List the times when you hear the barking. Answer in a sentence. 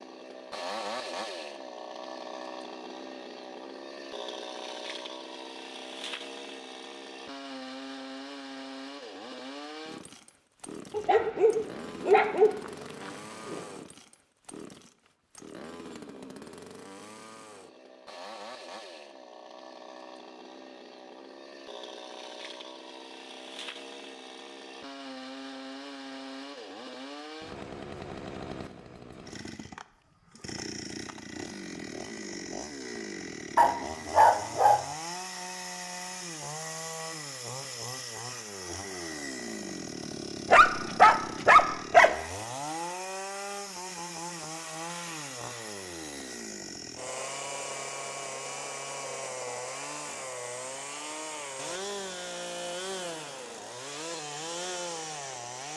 The barking can be heard from 10.9 to 13.6 s, from 33.5 to 34.9 s and from 40.5 to 42.1 s.